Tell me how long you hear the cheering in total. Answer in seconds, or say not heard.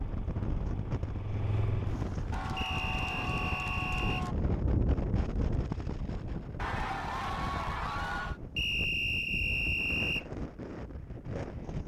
4 s.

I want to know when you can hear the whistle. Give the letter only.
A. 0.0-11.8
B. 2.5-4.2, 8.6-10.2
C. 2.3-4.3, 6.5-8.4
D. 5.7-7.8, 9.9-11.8
B.